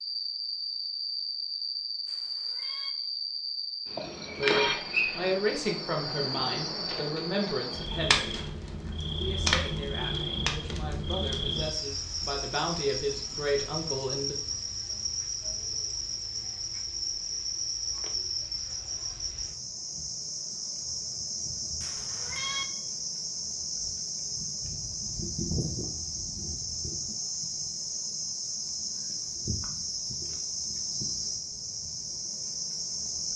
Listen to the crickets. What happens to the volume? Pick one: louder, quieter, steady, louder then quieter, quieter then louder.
steady.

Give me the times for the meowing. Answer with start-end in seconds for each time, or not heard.
2.0-2.9, 21.8-22.6.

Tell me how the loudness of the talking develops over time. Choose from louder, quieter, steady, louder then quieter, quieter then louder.
quieter then louder.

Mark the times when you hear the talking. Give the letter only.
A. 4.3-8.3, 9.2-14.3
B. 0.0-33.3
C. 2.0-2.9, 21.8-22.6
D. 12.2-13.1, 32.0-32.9
A.